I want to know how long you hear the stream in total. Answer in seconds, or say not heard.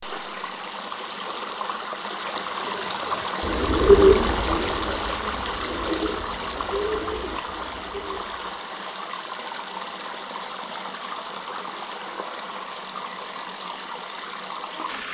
15 s.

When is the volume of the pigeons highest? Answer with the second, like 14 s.
4 s.